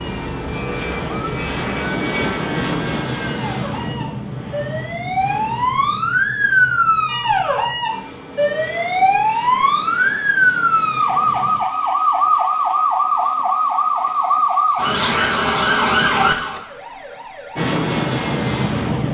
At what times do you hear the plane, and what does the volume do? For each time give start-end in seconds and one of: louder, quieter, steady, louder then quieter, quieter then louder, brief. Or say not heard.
0.0-11.6 quieter
17.6-19.0 brief.